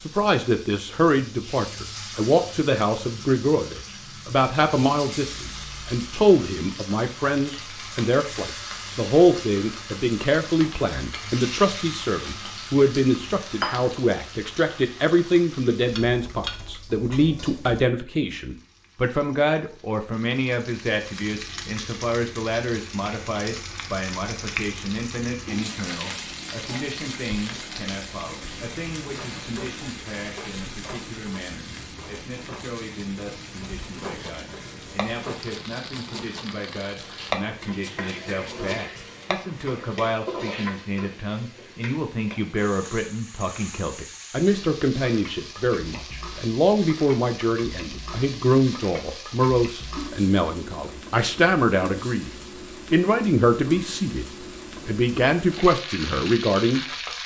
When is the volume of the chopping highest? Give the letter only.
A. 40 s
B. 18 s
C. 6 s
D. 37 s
D.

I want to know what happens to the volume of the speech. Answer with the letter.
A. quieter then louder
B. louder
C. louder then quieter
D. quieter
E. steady
A.